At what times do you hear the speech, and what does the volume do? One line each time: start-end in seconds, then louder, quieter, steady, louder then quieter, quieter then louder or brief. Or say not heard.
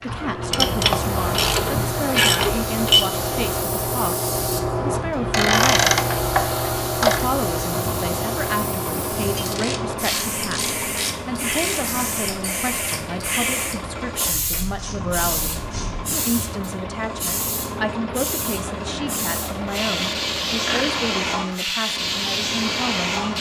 0.0-5.9 steady
7.0-23.3 steady.